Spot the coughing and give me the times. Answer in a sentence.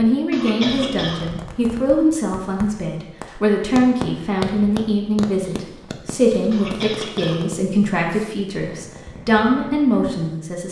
The coughing can be heard from 0.3 to 1.3 s and from 6.5 to 7.5 s.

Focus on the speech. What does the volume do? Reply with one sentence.
The volume of the speech stays about the same.